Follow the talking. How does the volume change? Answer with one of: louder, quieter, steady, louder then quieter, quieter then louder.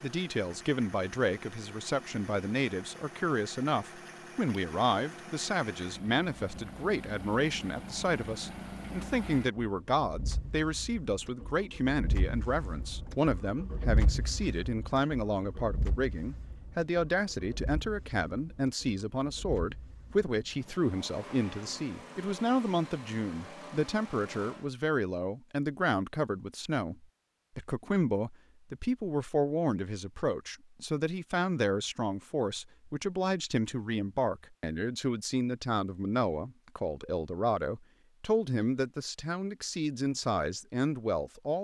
steady.